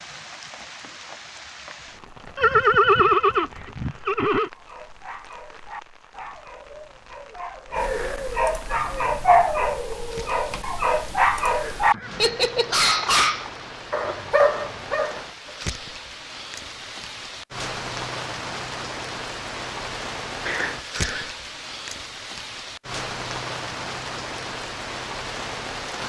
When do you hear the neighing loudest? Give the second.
3 s.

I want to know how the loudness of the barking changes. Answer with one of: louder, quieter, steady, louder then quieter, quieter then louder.
louder.